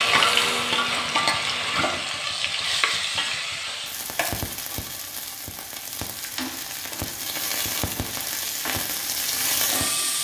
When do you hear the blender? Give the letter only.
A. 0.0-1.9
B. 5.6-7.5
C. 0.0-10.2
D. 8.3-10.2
A.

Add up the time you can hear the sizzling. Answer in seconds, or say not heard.
10 s.